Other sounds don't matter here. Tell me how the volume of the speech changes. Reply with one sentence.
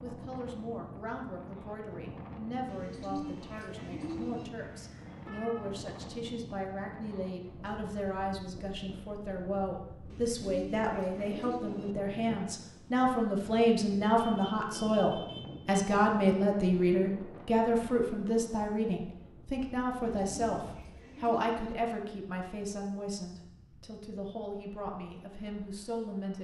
The volume of the speech goes up, then down.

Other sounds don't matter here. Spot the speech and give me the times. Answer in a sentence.
You can hear the speech from 0.0 to 26.3 s.